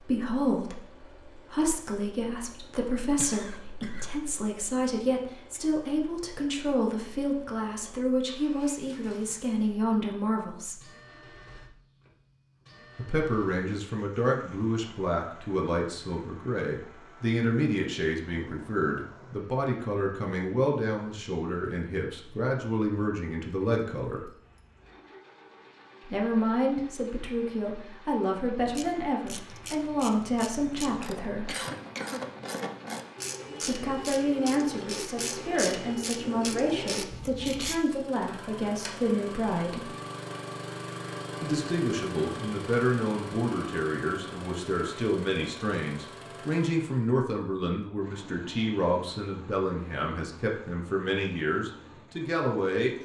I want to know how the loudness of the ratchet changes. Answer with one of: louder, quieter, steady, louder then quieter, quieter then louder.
louder.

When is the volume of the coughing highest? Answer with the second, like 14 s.
32 s.